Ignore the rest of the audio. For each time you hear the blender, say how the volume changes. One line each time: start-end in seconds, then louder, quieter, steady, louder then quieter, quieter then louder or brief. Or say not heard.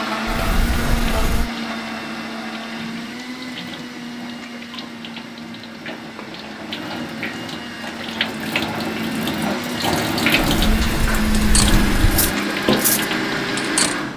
0.0-14.1 quieter then louder.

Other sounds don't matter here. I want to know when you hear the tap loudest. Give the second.
10 s.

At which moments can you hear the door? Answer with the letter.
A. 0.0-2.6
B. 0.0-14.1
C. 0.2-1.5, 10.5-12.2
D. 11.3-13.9
C.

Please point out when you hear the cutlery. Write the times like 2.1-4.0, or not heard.
11.3-13.9.